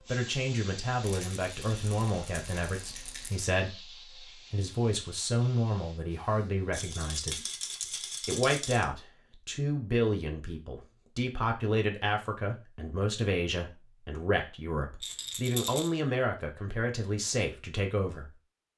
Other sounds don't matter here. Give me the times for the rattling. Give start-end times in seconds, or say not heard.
1.0-3.5, 6.7-8.8, 15.0-15.9.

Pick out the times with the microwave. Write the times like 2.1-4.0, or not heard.
not heard.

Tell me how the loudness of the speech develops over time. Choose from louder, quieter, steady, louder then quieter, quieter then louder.
steady.